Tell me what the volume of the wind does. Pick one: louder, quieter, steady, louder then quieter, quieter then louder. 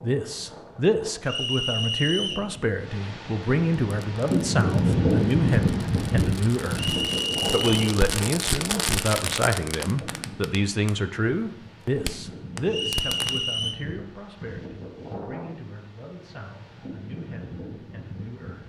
louder then quieter.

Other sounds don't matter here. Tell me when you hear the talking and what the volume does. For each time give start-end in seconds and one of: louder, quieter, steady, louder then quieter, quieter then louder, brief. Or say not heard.
0.0-18.6 quieter.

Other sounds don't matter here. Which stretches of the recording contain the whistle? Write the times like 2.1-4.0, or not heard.
1.2-2.5, 6.8-7.8, 12.7-13.8.